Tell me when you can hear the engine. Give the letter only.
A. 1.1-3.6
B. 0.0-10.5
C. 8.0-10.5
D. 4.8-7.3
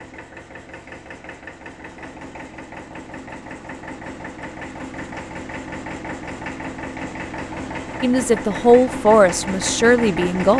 B.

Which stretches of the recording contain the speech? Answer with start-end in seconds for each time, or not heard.
8.0-10.5.